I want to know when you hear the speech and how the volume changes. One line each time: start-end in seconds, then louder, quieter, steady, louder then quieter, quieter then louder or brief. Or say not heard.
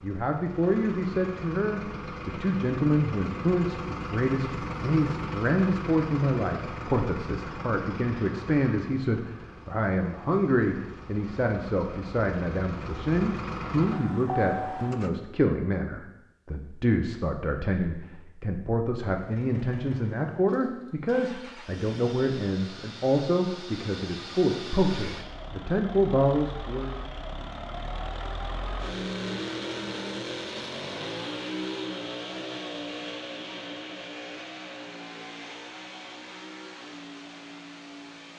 0.0-26.9 steady.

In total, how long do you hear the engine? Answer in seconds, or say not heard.
34 s.